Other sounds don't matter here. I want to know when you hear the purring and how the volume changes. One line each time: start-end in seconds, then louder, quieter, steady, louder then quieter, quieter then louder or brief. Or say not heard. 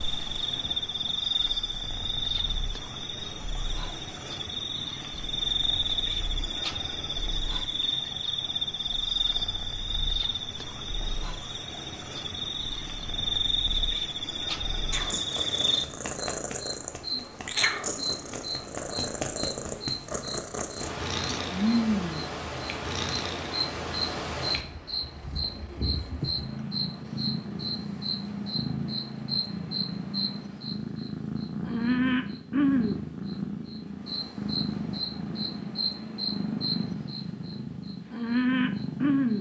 0.0-39.3 louder.